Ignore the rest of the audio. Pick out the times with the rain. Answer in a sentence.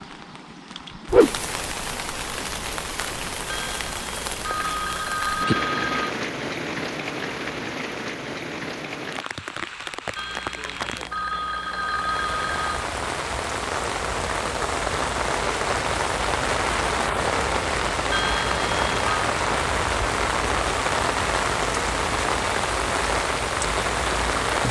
You can hear the rain from 0.0 to 24.6 s.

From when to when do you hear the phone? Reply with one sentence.
You can hear the phone from 3.5 to 6.2 s, from 10.2 to 12.8 s and from 18.1 to 19.1 s.